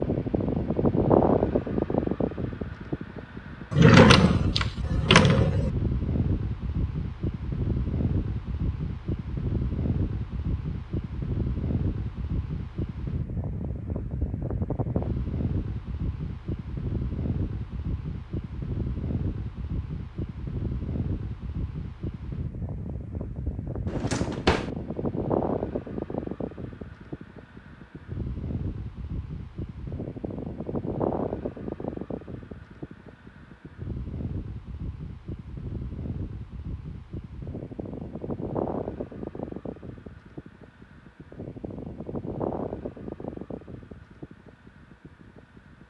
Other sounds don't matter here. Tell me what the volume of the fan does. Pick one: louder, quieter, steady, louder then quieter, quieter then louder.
quieter.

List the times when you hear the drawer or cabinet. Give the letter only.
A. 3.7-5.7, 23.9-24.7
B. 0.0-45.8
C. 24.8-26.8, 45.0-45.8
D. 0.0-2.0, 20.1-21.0
A.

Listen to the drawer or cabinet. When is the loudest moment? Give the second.
4 s.